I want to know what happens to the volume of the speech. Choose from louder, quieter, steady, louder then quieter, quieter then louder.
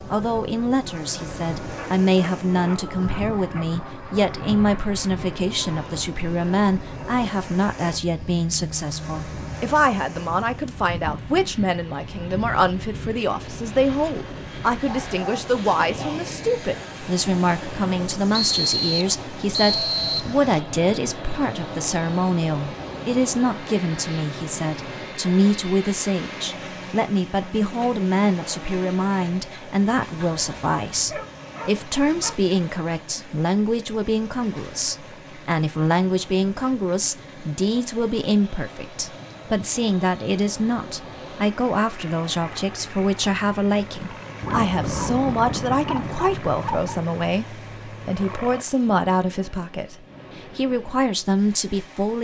steady.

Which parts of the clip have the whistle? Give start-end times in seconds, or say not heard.
18.4-20.4.